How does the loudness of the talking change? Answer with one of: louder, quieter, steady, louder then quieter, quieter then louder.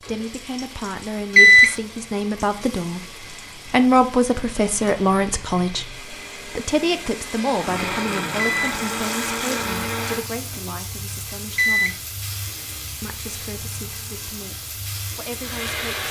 louder then quieter.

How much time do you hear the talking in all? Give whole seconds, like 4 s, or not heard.
15 s.